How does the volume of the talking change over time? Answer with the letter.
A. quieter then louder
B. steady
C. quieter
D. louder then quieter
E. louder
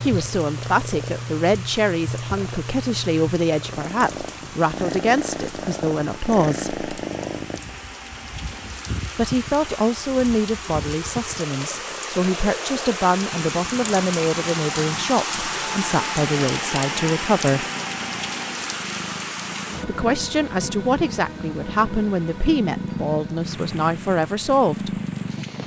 B.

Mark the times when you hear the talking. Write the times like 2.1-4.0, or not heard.
0.0-6.8, 9.2-17.6, 19.9-25.0.